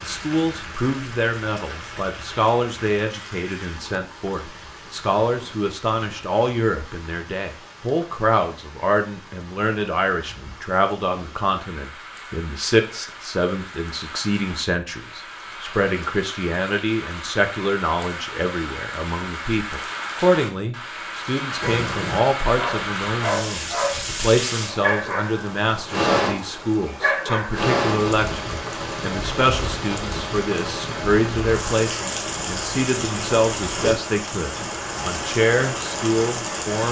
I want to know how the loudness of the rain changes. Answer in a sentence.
The loudness of the rain goes up.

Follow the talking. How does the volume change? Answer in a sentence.
The volume of the talking stays about the same.